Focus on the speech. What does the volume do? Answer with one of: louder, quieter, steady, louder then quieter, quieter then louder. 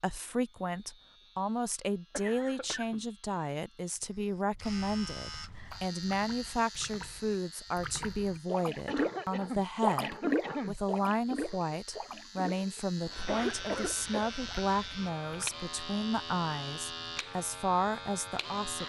steady.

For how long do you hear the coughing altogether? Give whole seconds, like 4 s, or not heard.
4 s.